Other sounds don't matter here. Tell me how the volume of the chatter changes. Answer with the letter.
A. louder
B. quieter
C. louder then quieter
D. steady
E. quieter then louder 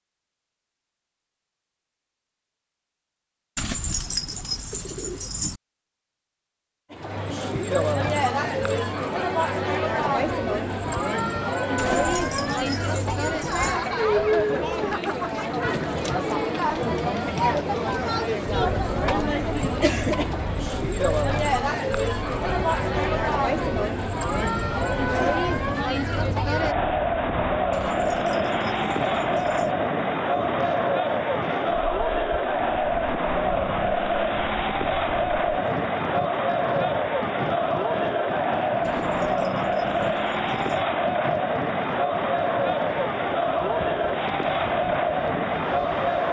D.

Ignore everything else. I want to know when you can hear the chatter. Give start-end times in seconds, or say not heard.
6.9-46.2.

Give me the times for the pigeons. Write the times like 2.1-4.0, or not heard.
3.5-5.6, 11.8-13.8, 27.7-29.8, 38.8-40.9.